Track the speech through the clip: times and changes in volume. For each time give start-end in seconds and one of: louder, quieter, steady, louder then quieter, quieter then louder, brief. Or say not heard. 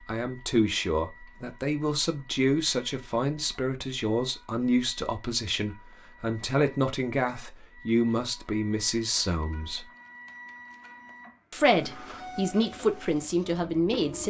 0.1-9.9 steady
11.5-14.2 brief.